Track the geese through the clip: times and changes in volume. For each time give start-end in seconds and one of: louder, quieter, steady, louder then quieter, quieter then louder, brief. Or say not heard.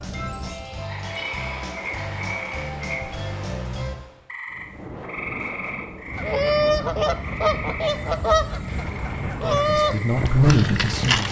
6.1-11.2 quieter.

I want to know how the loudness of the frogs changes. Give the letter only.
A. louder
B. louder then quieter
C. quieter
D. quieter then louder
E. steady
C.